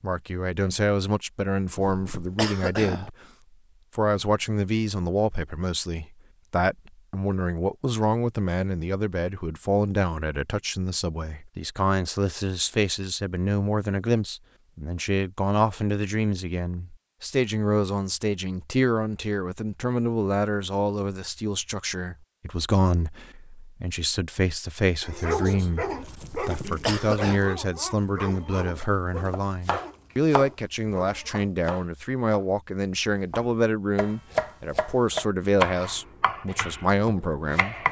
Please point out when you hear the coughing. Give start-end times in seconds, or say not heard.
1.8-3.1, 26.2-27.4.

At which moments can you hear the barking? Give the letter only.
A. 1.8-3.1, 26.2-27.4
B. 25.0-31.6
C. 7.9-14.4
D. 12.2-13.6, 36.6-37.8
B.